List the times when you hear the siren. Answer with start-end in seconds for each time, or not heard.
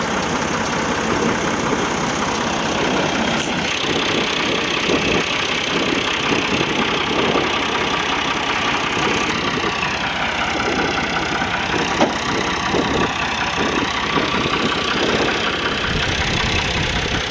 not heard.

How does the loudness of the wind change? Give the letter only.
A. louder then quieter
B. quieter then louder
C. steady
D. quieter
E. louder
C.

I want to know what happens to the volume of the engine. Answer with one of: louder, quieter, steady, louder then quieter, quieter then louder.
steady.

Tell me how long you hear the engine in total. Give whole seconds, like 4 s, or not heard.
17 s.